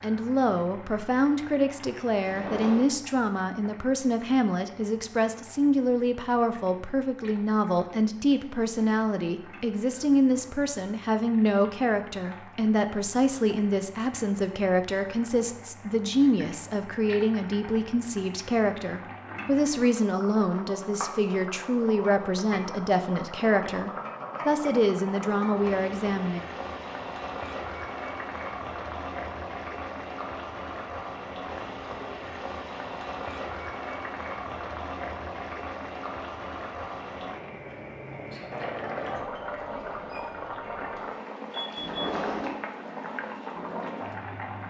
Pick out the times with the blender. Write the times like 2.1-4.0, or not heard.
not heard.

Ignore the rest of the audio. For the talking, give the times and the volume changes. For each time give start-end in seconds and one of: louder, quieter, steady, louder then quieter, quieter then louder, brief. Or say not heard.
0.0-26.4 steady.